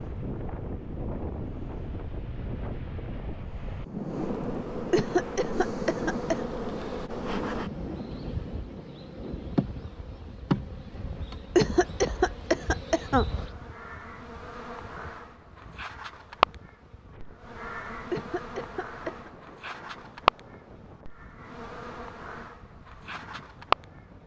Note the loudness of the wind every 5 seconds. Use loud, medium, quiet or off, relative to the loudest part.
loud, loud, quiet, quiet, quiet.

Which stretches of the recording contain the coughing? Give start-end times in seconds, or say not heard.
4.9-6.4, 11.6-13.2, 18.1-19.3.